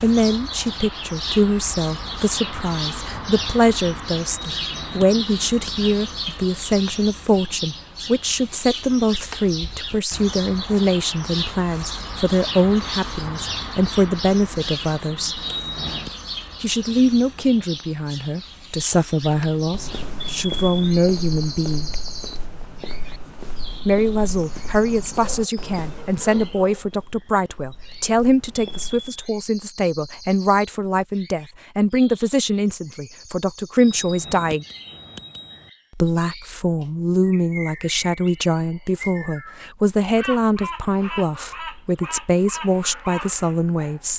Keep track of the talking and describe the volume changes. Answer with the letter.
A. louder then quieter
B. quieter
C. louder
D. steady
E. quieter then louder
D.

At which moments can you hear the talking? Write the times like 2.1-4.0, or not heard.
0.0-15.4, 16.6-22.0, 23.9-34.6, 36.0-44.1.